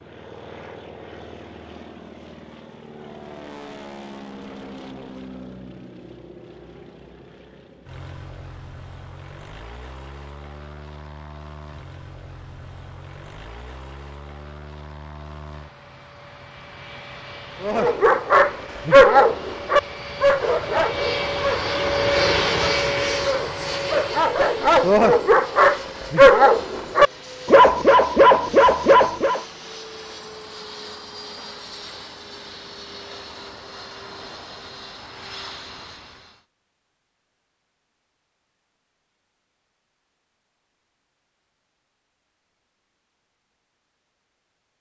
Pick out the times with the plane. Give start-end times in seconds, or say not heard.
0.0-36.5.